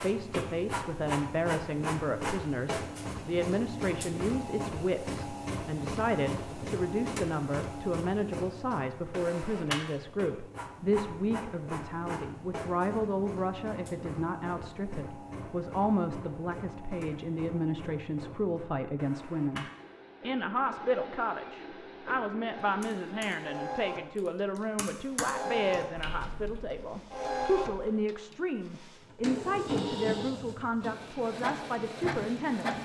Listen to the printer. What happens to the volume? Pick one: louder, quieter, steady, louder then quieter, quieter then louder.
quieter then louder.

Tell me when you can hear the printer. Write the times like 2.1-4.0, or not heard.
0.0-32.8.